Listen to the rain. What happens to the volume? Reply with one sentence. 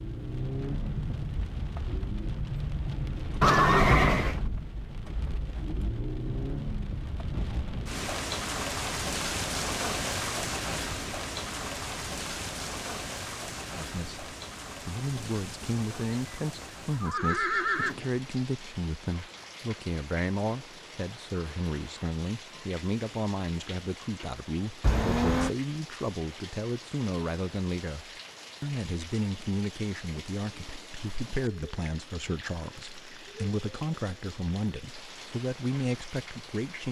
The loudness of the rain goes down.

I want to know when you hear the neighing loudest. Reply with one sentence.
The loudest moment of the neighing is at 4 seconds.